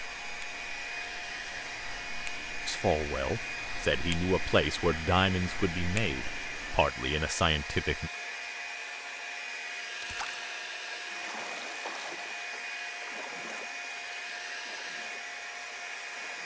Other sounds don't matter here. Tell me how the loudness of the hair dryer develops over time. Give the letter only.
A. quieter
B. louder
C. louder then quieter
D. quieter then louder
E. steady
E.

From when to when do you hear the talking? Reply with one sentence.
The talking can be heard from 2.6 to 8.1 s.